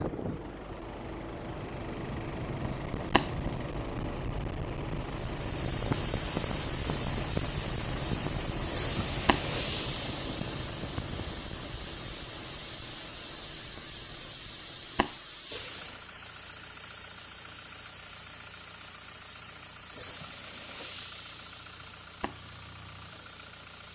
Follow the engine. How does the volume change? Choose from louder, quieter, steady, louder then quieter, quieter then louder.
quieter.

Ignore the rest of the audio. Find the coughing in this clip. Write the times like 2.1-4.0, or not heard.
not heard.